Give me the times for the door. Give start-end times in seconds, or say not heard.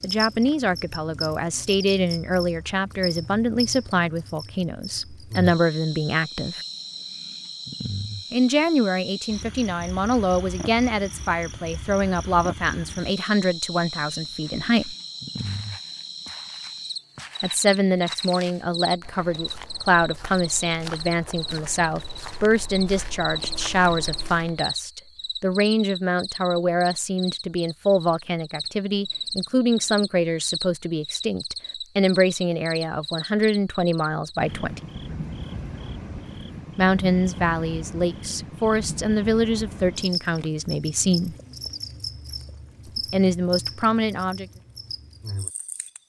not heard.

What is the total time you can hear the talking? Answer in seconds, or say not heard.
37 s.